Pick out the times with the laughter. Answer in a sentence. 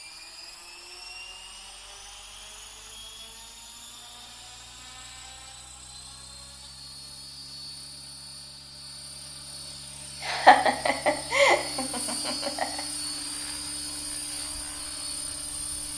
The laughter can be heard from 10.2 to 12.8 s.